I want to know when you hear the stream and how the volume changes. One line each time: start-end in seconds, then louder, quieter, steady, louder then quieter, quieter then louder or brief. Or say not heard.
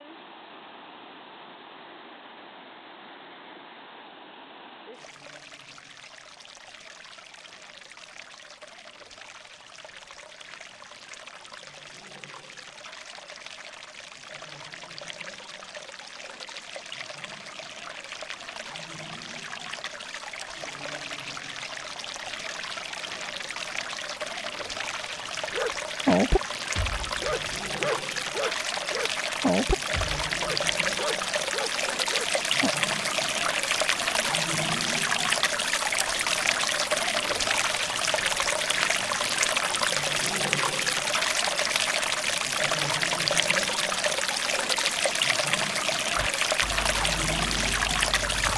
0.0-48.5 louder.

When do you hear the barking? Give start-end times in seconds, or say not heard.
25.5-32.7, 46.1-48.5.